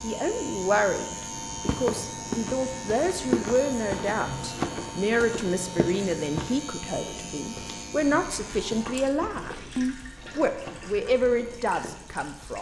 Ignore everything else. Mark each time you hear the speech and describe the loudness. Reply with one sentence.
You can hear the speech from 0.0 to 12.5 s, at a steady volume.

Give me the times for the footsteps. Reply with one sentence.
You can hear the footsteps from 1.3 to 11.9 s.